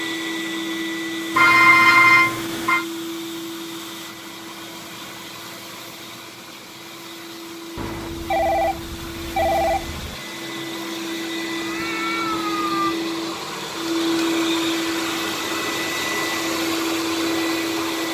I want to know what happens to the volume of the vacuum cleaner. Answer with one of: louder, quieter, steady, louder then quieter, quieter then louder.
quieter then louder.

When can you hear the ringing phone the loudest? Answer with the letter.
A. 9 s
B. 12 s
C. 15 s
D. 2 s
D.